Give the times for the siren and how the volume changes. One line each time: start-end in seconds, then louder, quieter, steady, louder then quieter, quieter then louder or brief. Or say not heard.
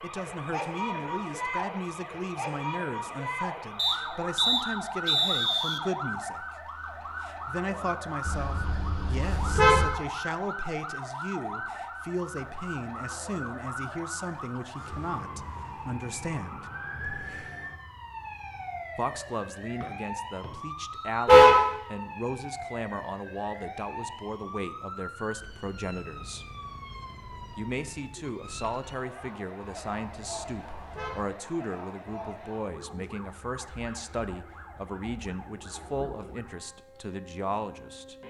0.0-38.2 quieter.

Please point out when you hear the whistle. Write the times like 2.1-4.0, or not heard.
3.8-5.8, 19.8-21.2.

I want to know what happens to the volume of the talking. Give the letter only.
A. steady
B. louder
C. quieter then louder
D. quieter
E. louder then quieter
A.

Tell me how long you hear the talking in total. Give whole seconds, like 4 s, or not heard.
34 s.